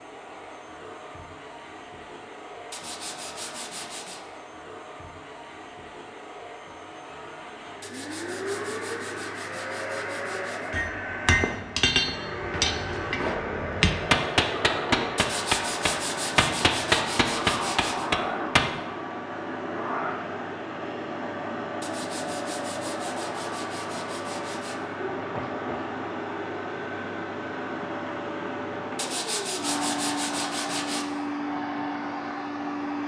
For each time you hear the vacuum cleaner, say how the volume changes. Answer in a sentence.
You can hear the vacuum cleaner from 0.0 to 33.0 s, getting louder.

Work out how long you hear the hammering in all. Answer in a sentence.
The hammering can be heard for 8 seconds in total.